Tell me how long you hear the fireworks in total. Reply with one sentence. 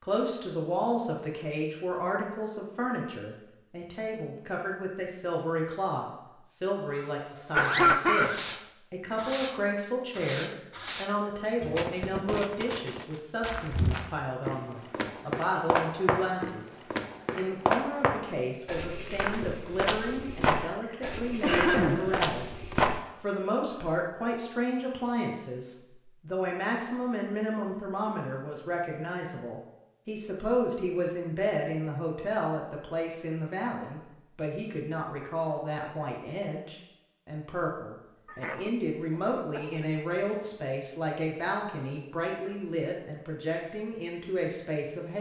You can hear the fireworks for 6 seconds altogether.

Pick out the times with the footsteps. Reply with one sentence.
The footsteps can be heard from 13.4 to 23.0 s.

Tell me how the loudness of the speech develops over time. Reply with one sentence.
The loudness of the speech stays about the same.